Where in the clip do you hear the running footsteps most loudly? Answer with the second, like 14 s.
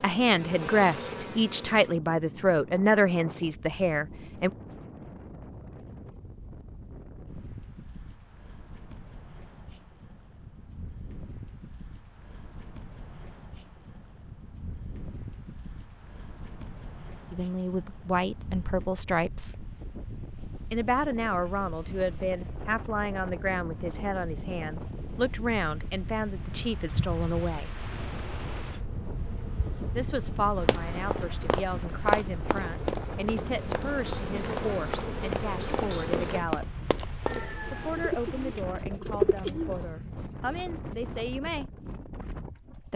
32 s.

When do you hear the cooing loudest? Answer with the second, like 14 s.
39 s.